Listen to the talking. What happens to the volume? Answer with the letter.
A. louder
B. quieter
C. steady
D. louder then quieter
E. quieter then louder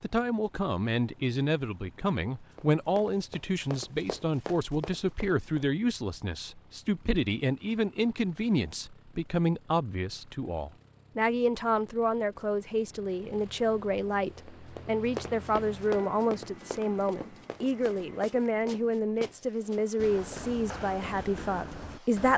C.